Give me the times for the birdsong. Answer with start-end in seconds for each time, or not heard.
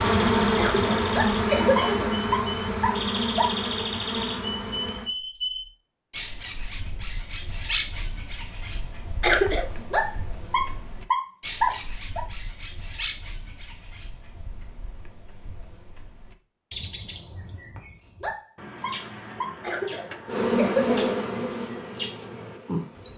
0.1-23.1.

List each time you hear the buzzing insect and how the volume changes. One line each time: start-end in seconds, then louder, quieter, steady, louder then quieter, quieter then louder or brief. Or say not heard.
0.0-5.1 quieter
20.2-23.1 brief.